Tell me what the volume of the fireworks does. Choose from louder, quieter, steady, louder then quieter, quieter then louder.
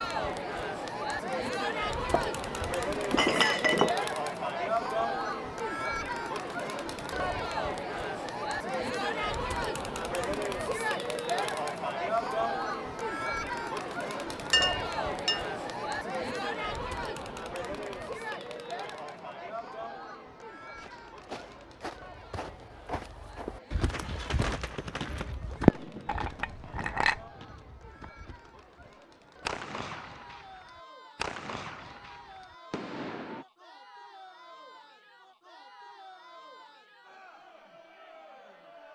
louder then quieter.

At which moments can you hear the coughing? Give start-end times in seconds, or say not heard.
not heard.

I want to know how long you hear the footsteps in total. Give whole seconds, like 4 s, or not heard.
8 s.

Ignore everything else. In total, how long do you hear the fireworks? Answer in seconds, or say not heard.
8 s.